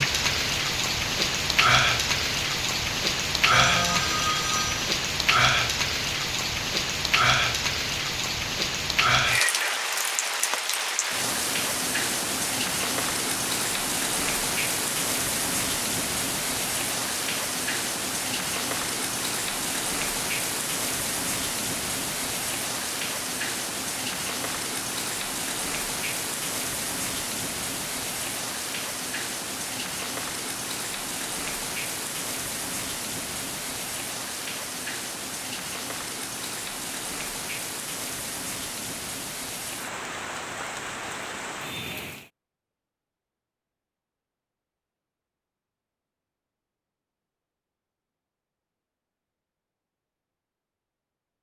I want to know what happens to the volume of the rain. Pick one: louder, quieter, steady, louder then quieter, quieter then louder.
quieter.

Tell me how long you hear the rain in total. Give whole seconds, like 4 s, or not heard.
42 s.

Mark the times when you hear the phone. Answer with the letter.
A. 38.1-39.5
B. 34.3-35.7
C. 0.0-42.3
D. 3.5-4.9
D.